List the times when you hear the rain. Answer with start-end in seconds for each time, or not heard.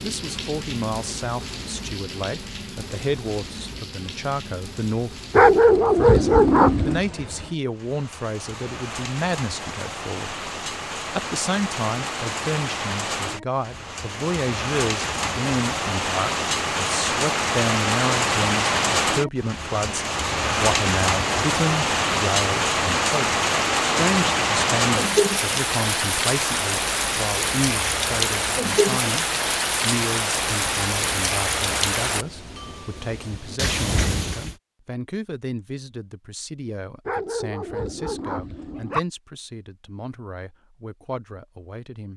0.0-34.5.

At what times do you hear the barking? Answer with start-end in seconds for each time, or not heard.
5.3-7.0, 37.0-39.0.